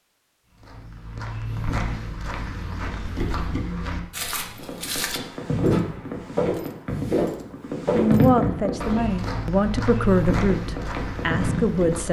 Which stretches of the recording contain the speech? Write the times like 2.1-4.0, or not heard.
7.9-12.0.